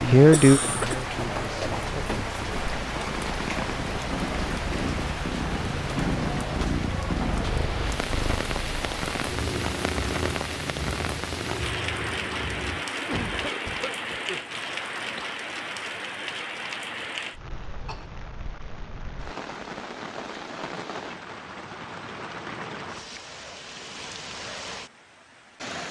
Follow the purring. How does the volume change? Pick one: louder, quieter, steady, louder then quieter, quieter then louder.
quieter.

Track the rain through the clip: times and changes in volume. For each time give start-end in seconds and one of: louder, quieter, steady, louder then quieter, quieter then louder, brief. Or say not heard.
0.0-25.8 quieter.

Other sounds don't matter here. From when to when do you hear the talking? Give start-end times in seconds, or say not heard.
0.1-2.5.